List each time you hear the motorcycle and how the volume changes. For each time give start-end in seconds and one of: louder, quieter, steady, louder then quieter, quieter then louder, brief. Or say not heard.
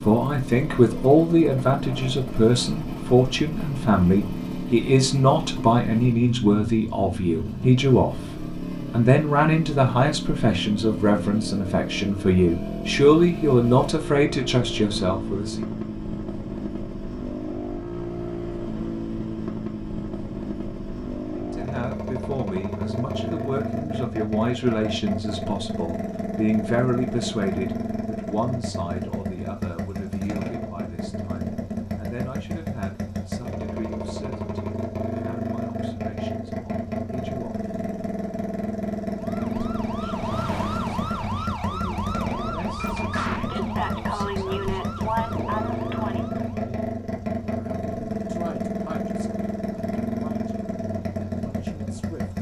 0.0-52.3 steady.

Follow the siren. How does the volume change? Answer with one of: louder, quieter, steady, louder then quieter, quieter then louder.
steady.